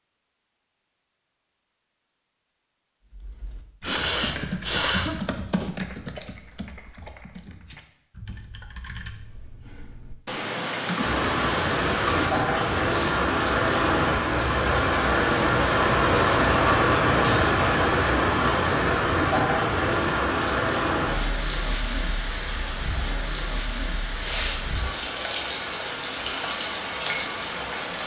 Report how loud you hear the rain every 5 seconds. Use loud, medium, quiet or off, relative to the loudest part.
off, off, loud, loud, medium, medium.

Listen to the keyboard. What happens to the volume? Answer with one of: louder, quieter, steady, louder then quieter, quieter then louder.
quieter then louder.